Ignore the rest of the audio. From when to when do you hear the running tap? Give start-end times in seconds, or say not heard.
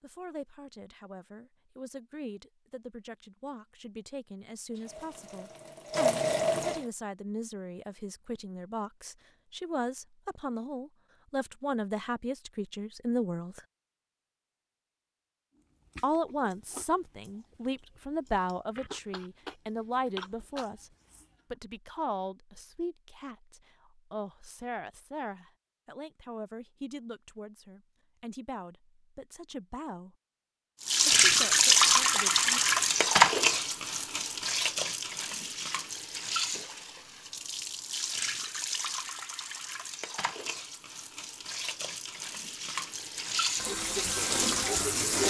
4.7-6.8, 30.8-45.2.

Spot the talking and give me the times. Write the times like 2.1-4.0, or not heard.
0.0-13.6, 16.0-20.9, 21.5-30.1, 31.1-32.6.